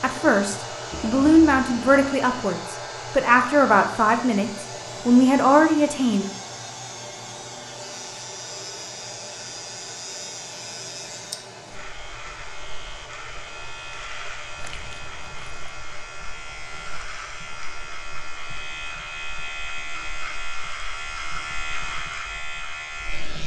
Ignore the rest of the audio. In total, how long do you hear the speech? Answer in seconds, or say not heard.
6 s.